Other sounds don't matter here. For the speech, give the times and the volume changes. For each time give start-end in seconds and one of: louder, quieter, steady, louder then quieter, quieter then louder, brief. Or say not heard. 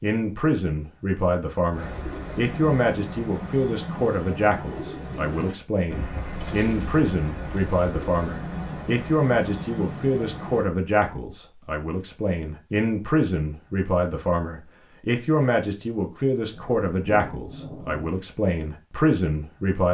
0.0-19.8 steady.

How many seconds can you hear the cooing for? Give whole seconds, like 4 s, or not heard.
9 s.